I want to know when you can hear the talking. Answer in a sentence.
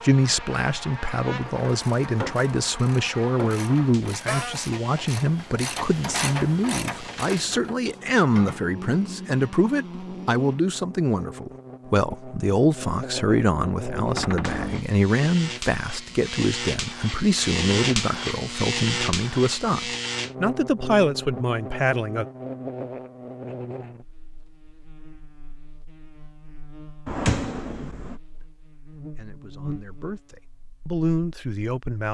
You can hear the talking from 0.0 to 22.2 s and from 28.4 to 32.0 s.